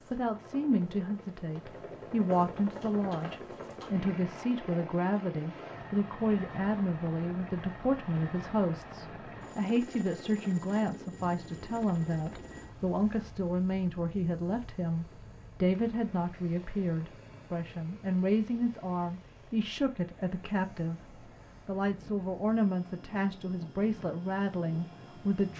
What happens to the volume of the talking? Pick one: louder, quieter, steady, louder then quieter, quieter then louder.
steady.